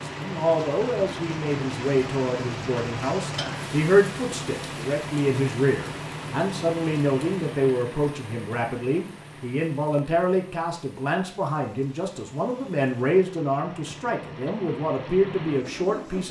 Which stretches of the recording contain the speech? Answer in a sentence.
You can hear the speech from 0.0 to 16.2 s.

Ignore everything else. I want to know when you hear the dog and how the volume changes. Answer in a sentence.
The dog can't be heard in this clip.